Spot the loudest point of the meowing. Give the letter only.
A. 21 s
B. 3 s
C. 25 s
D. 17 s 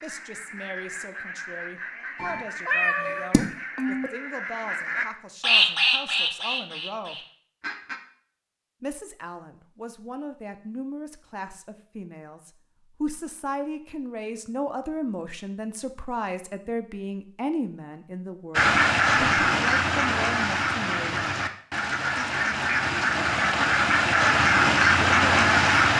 B.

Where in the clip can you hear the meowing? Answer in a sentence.
You can hear the meowing from 2.1 to 4.1 s.